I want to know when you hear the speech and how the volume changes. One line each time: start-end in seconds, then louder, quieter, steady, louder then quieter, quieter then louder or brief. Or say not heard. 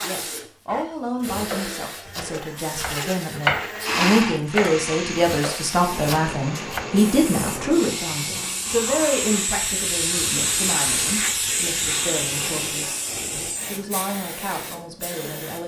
0.0-15.6 louder then quieter.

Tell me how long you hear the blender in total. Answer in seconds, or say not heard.
9 s.